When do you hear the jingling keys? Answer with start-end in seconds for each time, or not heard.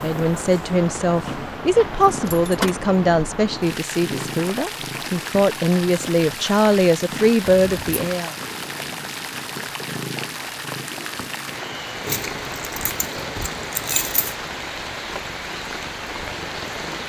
2.1-2.8, 7.5-8.0, 12.1-14.3.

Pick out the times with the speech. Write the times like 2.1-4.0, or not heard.
0.0-8.3.